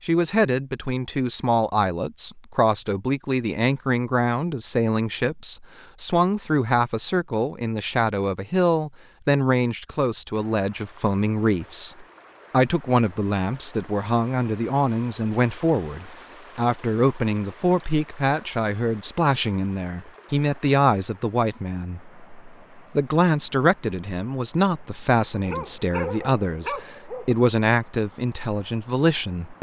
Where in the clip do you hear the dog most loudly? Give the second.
26 s.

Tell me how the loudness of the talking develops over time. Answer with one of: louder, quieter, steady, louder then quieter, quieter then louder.
steady.